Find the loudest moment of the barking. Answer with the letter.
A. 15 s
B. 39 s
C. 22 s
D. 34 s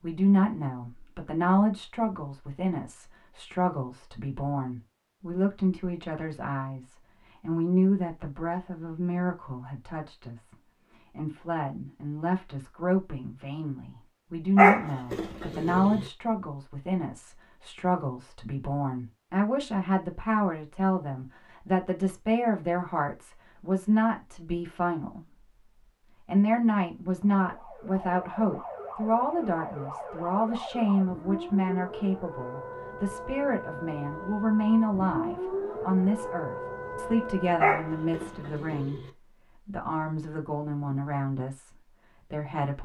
A.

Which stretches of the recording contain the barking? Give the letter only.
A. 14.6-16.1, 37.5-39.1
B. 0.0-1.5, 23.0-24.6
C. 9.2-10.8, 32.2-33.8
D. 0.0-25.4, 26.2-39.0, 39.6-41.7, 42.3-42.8
A.